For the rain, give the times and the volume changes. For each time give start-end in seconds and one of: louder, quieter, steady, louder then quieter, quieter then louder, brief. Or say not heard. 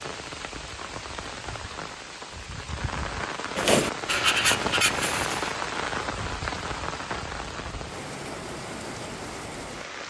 0.0-10.0 louder then quieter.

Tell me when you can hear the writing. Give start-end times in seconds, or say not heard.
3.5-5.5.